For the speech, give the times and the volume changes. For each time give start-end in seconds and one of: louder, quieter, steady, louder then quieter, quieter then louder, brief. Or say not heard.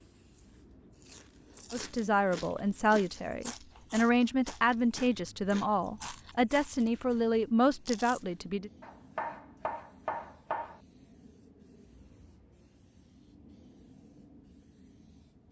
1.7-8.7 steady.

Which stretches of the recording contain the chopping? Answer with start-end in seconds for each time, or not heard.
8.8-10.8.